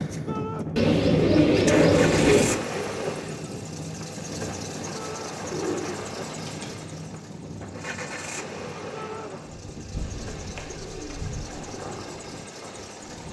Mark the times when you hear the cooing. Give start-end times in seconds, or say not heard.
0.8-2.6, 5.4-6.8, 9.9-11.7.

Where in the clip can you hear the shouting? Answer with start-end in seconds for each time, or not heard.
0.2-0.7, 4.9-5.3, 8.9-9.3.